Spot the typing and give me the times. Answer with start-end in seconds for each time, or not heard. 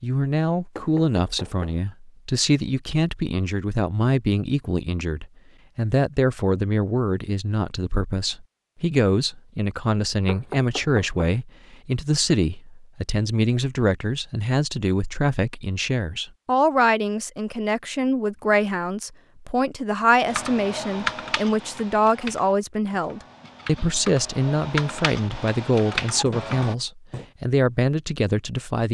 20.2-26.8.